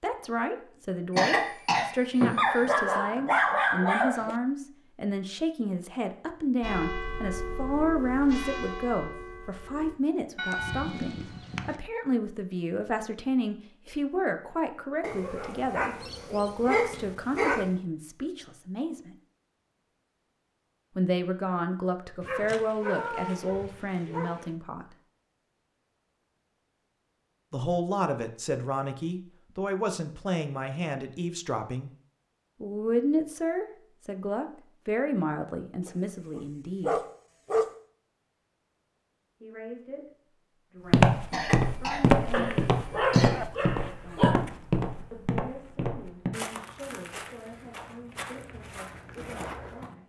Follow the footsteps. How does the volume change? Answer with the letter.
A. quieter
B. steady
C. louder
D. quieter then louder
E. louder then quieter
A.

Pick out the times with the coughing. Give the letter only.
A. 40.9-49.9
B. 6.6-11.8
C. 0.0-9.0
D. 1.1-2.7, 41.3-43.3
D.